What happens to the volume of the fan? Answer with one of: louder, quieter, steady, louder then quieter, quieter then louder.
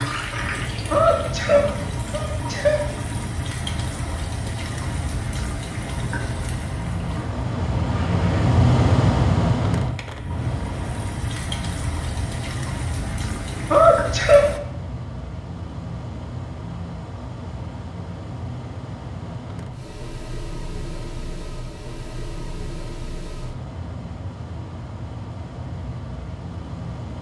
louder then quieter.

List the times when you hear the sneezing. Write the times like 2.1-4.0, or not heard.
0.9-2.8, 13.7-14.5.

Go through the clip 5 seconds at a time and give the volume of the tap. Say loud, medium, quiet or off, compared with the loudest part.
loud, loud, loud, off, off, off.